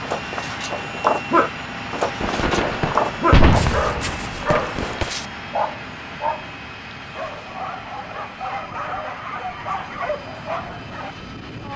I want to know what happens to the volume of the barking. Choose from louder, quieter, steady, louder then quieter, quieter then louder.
quieter.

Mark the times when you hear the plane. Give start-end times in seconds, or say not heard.
0.0-11.7.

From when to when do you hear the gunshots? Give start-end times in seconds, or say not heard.
2.2-5.1.